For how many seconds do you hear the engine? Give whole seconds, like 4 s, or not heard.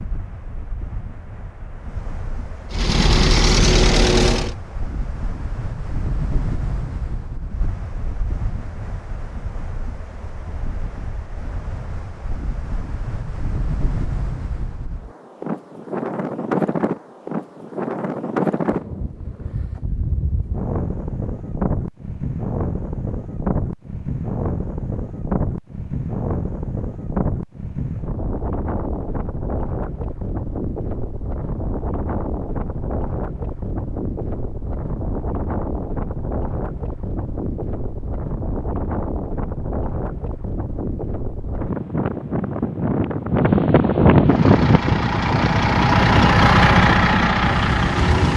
6 s.